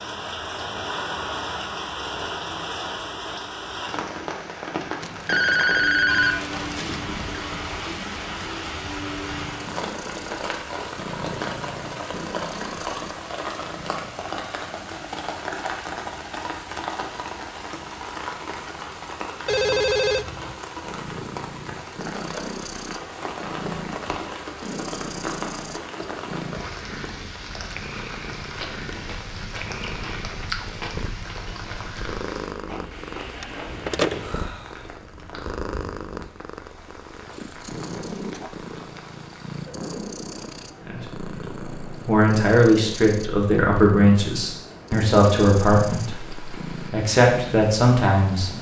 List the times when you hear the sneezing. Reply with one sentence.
You can't hear the sneezing here.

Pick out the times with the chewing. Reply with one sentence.
The chewing can be heard from 28.4 to 36.0 s.